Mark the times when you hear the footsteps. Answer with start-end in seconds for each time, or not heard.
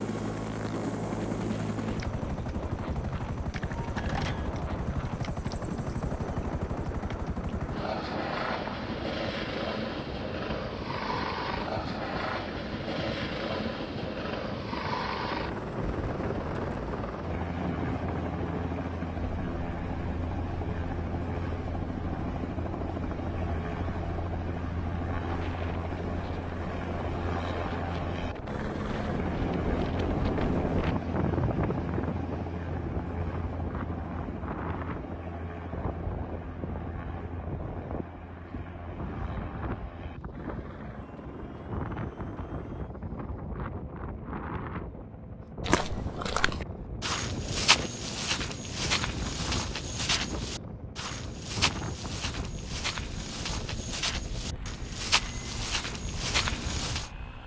45.6-57.1.